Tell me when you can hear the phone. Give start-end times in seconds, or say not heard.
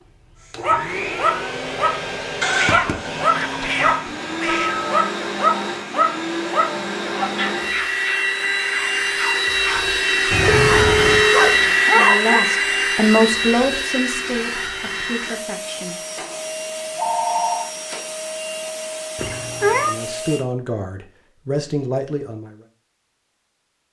3.6-5.0, 10.4-11.6, 16.9-17.7.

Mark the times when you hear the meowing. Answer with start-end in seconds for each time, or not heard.
2.5-4.8, 10.3-11.2, 19.1-19.9.